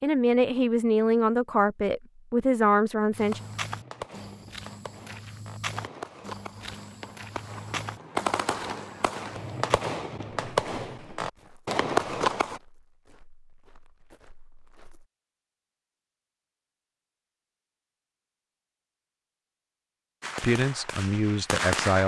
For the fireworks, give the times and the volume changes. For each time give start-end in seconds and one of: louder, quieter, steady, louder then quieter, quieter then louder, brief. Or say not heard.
3.1-12.6 louder
20.2-22.0 brief.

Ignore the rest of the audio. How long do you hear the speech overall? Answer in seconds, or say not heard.
5 s.